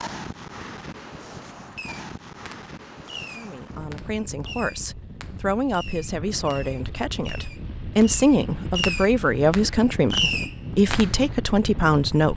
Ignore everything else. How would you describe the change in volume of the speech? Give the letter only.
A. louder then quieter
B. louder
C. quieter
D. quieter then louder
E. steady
B.